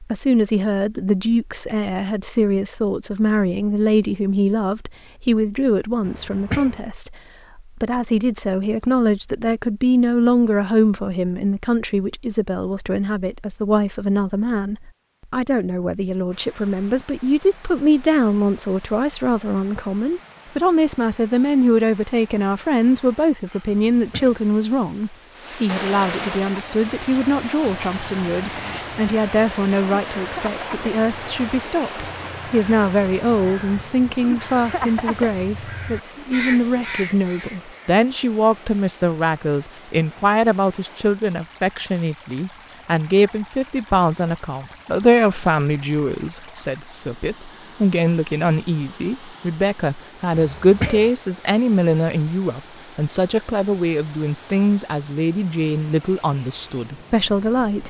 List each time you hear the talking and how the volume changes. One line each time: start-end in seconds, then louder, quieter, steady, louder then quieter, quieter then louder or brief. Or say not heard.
0.0-57.8 steady.